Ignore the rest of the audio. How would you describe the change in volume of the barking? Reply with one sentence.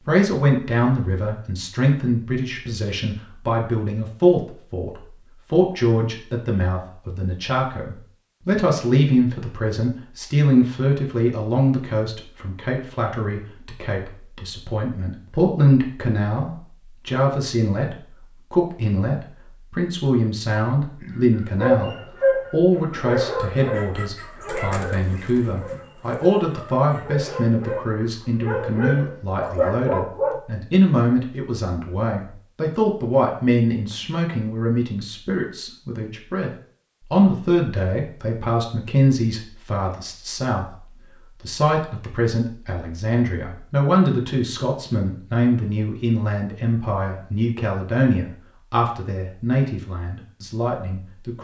The volume of the barking goes down, then up.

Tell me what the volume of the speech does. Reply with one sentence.
The loudness of the speech stays about the same.